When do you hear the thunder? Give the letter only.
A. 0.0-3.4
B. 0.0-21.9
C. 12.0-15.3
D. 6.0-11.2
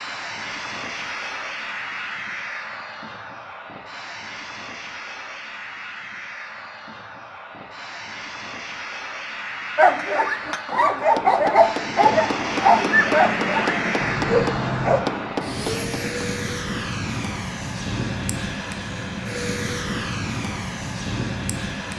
C.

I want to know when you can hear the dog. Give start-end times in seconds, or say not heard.
9.8-15.0.